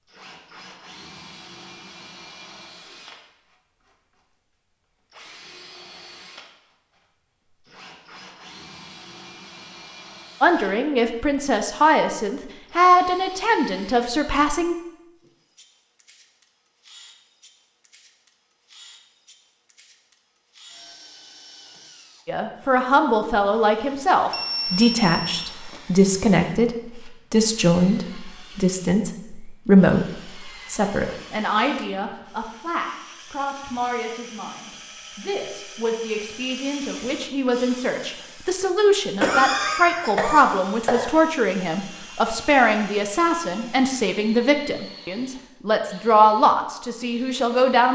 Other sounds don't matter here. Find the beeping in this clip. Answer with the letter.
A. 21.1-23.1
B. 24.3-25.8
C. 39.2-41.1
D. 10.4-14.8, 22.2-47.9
B.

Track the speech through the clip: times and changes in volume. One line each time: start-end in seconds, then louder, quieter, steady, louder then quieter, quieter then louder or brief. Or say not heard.
10.4-14.8 louder then quieter
22.2-47.9 quieter then louder.